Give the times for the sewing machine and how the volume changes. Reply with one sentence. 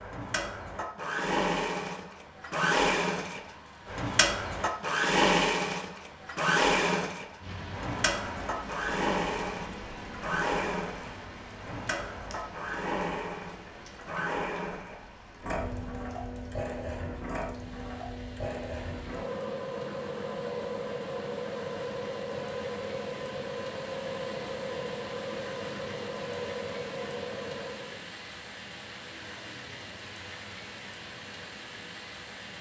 The sewing machine can be heard from 0.0 to 28.0 s, getting quieter.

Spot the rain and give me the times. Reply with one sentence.
The rain can be heard from 7.4 to 32.5 s.